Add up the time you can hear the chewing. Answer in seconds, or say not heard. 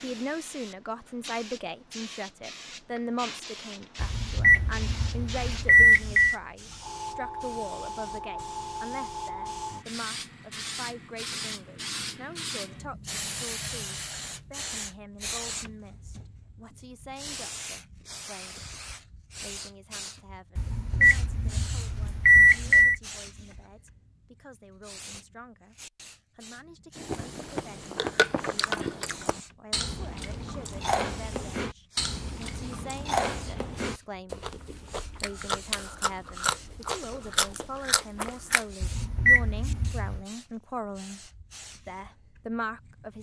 12 s.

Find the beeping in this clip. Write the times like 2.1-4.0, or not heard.
4.0-6.3, 20.6-22.9, 38.8-40.2.